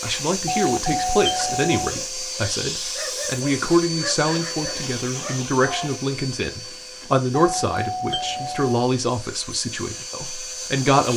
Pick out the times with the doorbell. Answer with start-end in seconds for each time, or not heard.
0.5-1.9, 7.3-8.8.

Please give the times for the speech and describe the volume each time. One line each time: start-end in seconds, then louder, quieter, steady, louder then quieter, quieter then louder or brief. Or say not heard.
0.0-11.1 steady.